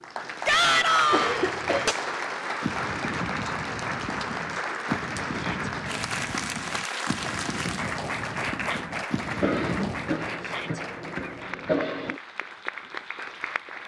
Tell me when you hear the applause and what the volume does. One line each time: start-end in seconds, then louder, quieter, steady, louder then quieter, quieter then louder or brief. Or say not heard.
0.0-13.8 quieter.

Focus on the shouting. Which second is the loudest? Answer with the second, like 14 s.
1 s.